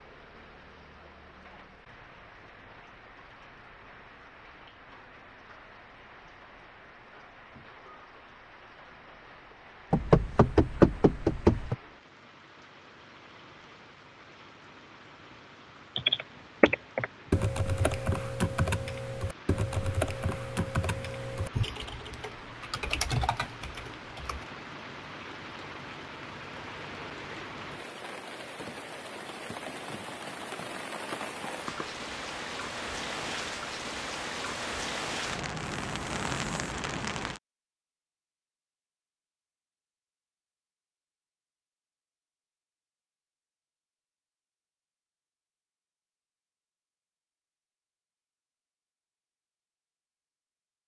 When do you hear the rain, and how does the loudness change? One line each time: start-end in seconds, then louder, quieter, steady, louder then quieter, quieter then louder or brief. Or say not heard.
0.0-37.4 louder.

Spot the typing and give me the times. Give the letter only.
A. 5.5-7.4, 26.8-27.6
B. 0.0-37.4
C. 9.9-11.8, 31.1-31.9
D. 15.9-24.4
D.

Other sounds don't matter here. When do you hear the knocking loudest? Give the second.
11 s.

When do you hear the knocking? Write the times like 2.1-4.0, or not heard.
9.9-11.8, 31.1-31.9.